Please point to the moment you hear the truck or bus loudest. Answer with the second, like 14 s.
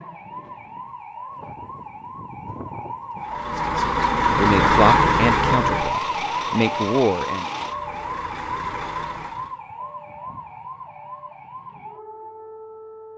5 s.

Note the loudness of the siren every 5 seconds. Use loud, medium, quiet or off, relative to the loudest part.
medium, loud, medium.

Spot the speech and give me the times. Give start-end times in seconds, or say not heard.
3.5-7.5.